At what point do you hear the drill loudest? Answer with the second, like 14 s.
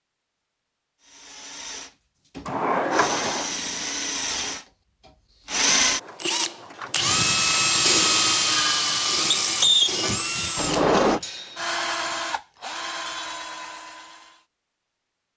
8 s.